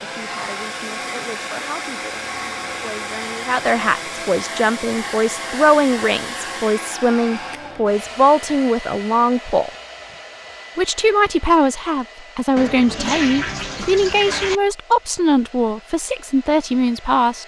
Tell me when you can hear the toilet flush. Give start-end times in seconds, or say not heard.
12.6-14.6.